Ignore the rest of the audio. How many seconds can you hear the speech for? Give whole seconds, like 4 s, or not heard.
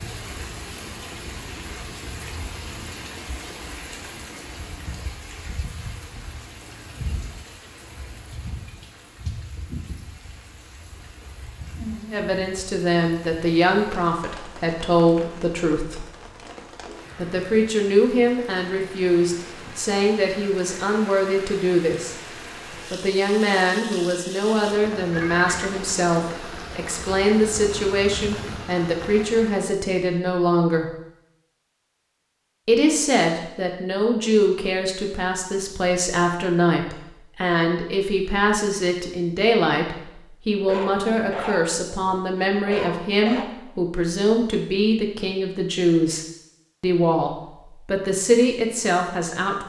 33 s.